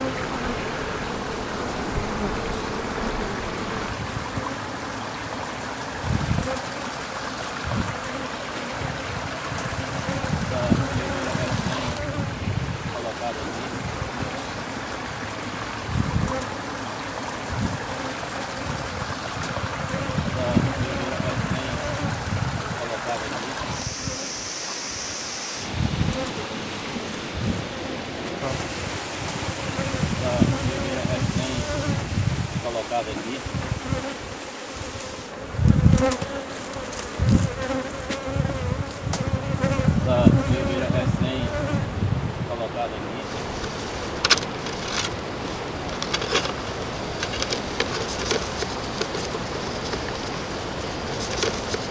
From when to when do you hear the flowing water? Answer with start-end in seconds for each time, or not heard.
0.0-51.8.